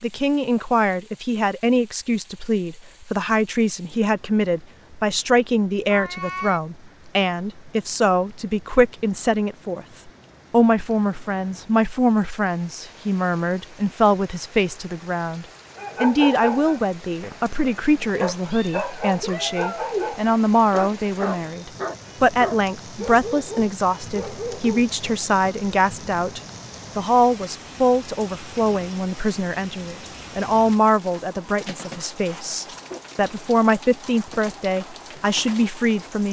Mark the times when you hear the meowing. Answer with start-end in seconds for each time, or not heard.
5.8-6.6, 18.5-20.1.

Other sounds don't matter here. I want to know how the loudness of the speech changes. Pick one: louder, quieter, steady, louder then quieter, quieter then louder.
steady.